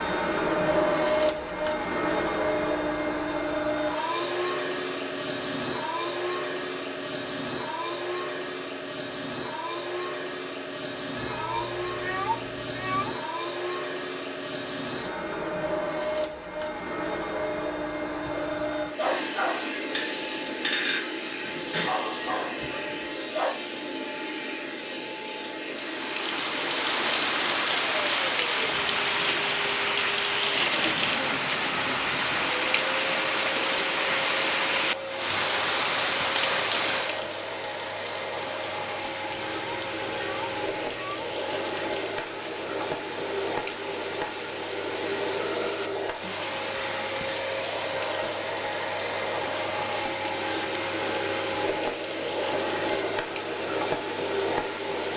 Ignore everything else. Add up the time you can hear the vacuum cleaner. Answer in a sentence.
The vacuum cleaner can be heard for 55 seconds in total.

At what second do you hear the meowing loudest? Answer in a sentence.
The volume of the meowing peaks at 12 seconds.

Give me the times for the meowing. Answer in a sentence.
The meowing can be heard from 11.2 to 13.2 s and from 39.3 to 41.4 s.